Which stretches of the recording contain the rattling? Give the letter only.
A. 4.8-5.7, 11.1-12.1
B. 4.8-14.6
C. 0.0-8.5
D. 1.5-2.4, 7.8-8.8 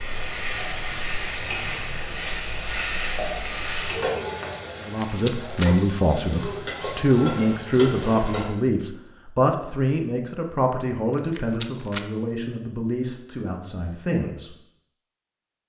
A.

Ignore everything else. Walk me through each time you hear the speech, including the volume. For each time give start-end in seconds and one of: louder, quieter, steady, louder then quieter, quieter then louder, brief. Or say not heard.
4.8-14.6 quieter.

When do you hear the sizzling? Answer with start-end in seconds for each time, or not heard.
0.0-8.5.